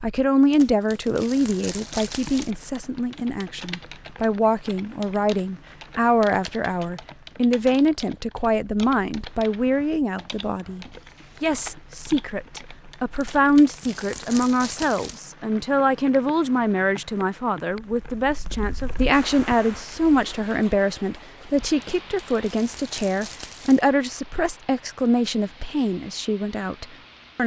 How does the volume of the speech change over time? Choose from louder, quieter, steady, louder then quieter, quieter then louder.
steady.